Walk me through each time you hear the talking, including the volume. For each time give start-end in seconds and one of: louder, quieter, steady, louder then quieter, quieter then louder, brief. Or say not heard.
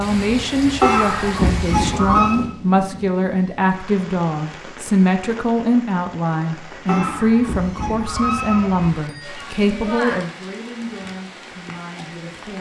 0.0-12.5 quieter.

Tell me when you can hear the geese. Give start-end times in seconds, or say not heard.
0.8-2.4, 6.8-8.9.